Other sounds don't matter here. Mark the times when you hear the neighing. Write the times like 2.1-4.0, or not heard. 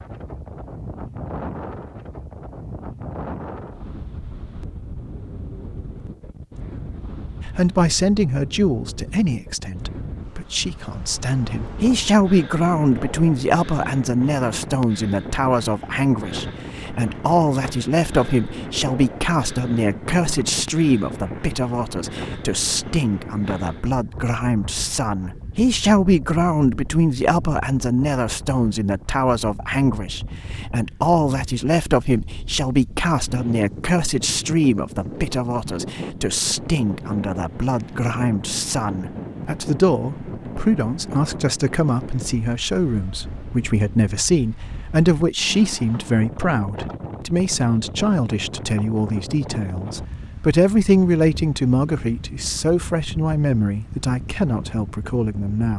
not heard.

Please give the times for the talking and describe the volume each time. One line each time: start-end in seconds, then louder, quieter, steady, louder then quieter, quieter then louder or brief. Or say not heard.
7.5-55.7 steady.